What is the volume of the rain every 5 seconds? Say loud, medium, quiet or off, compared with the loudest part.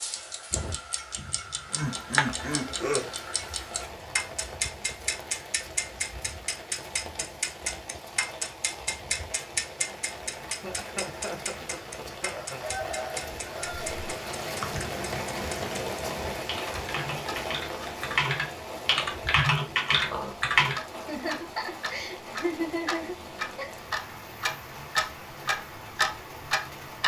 medium, medium, loud, loud, medium, medium.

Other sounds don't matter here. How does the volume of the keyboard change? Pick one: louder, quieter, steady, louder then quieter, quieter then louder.
louder.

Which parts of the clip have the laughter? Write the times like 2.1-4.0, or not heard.
1.1-3.1, 10.4-12.6, 21.0-23.8.